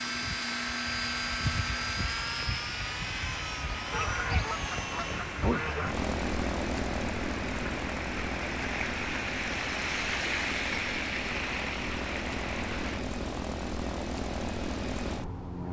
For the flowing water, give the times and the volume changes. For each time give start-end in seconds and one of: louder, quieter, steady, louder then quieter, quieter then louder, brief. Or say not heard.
0.0-13.1 louder.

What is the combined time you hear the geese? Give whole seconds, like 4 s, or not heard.
2 s.